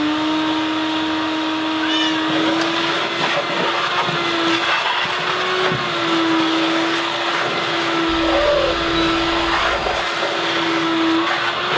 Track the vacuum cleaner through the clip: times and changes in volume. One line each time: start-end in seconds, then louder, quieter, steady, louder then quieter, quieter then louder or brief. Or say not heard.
0.0-11.7 steady.